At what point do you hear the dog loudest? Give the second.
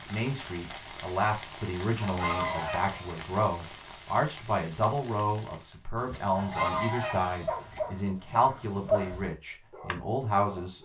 9 s.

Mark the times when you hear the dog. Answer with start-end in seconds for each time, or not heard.
6.0-10.7.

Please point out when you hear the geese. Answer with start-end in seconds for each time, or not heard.
1.9-3.2, 6.3-7.8.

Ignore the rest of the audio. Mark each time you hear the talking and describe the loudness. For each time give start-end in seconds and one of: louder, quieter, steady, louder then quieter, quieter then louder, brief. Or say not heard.
0.0-10.7 steady.